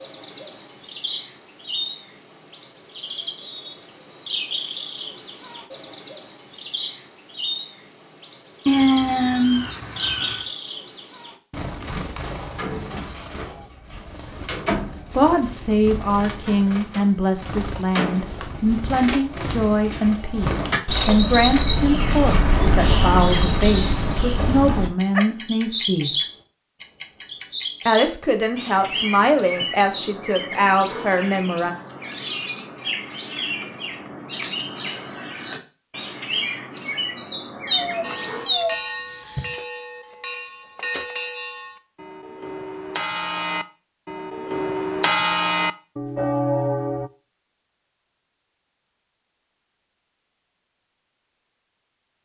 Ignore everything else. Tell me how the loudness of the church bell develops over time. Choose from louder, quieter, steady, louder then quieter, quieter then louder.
louder.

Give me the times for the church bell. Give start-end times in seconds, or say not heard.
38.0-47.1.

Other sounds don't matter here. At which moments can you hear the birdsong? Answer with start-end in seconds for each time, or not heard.
0.0-38.6.